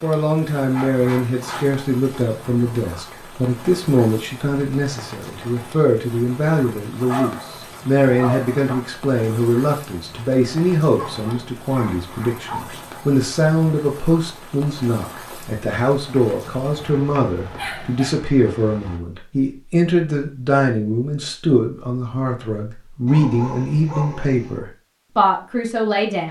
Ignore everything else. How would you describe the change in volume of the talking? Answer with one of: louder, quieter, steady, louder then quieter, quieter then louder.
steady.